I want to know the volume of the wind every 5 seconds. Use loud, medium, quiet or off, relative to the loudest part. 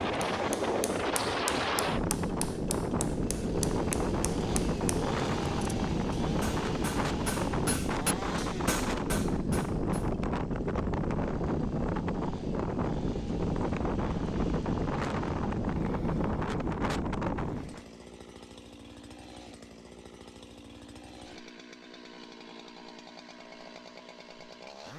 loud, loud, loud, loud, off.